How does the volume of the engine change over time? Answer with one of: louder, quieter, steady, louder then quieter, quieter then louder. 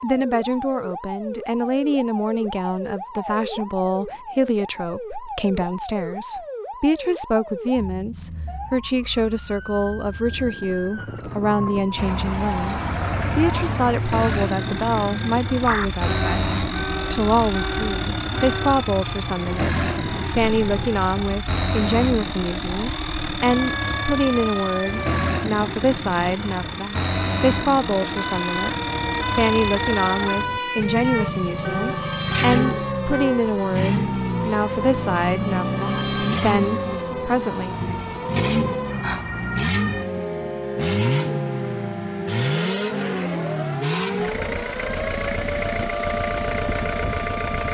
steady.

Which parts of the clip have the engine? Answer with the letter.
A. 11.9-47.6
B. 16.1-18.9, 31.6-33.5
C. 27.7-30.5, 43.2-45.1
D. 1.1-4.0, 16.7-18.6
A.